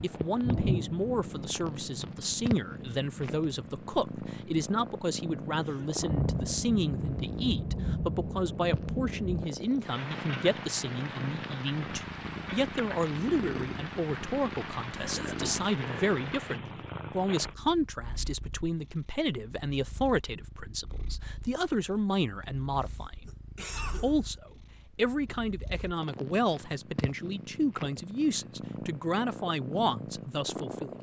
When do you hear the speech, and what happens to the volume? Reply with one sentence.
You can hear the speech from 0.0 to 30.9 s, at a steady volume.